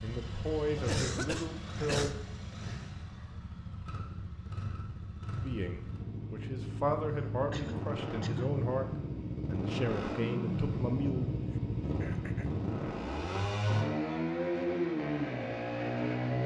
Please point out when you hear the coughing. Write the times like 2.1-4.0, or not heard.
0.8-2.1, 7.5-8.6, 11.5-12.5.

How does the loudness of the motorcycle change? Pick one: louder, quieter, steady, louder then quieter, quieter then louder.
louder.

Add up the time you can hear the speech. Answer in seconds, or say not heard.
8 s.